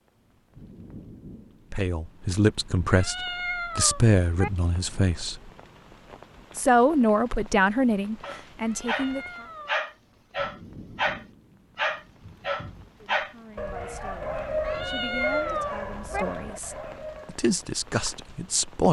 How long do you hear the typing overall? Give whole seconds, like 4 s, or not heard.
not heard.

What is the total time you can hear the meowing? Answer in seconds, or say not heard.
4 s.